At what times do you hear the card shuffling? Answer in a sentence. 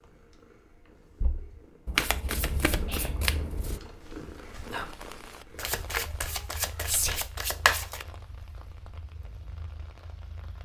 You can hear the card shuffling from 1.9 to 3.8 s and from 5.5 to 8.1 s.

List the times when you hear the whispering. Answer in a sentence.
The whispering can be heard from 2.9 to 3.4 s and from 6.8 to 7.2 s.